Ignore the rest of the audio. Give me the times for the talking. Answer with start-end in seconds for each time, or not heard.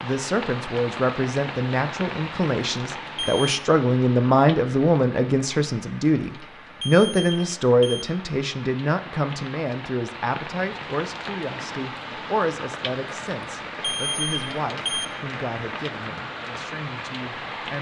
0.0-17.7.